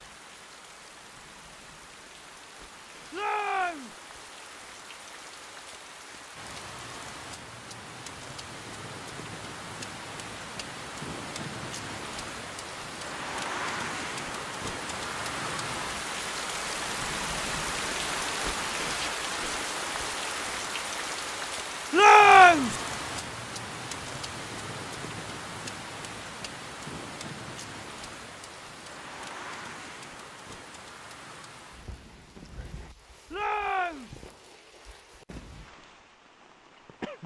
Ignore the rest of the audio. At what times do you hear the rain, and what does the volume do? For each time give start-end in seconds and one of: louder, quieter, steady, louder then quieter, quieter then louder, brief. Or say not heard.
0.0-37.2 louder then quieter.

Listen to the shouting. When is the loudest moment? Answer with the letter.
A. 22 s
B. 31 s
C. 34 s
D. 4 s
A.